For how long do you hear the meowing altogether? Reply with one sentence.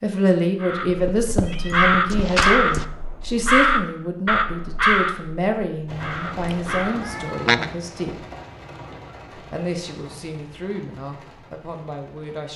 You can hear the meowing for 3 seconds altogether.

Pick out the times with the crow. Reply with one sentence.
The crow can be heard from 0.6 to 7.0 s.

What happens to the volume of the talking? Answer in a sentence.
The volume of the talking goes down.